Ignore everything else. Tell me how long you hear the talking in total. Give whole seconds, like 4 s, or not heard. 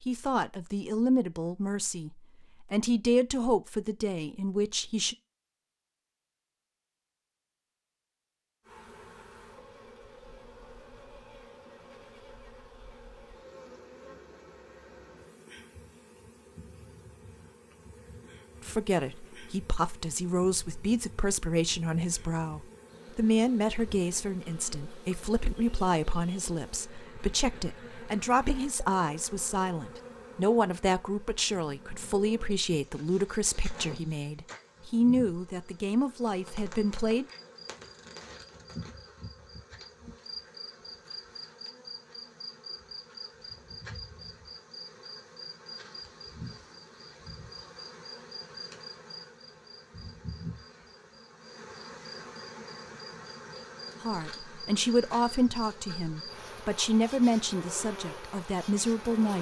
29 s.